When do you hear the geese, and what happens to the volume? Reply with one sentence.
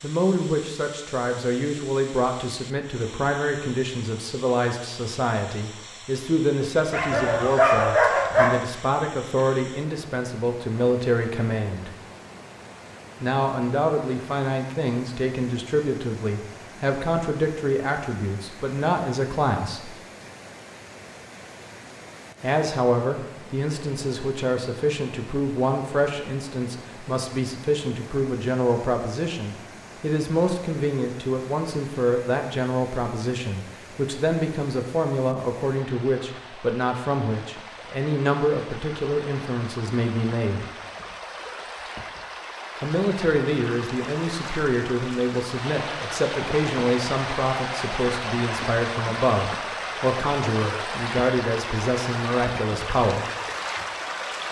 You can't hear the geese here.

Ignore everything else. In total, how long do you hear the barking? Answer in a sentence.
The barking can be heard for 2 seconds in total.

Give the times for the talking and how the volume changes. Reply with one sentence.
You can hear the talking from 0.0 to 11.9 s, at a steady volume; from 13.2 to 19.9 s, at a steady volume; from 22.4 to 40.6 s, at a steady volume; and from 42.8 to 53.2 s, at a steady volume.